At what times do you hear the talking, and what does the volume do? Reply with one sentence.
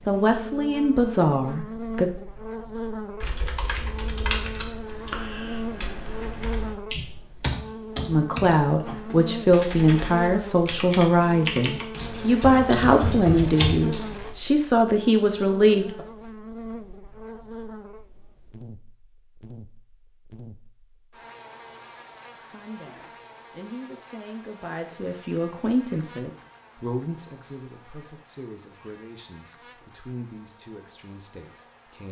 The talking can be heard briefly from 0.1 to 2.1 s; from 8.1 to 16.0 s, at a steady volume; and from 22.4 to 32.0 s, getting louder then quieter.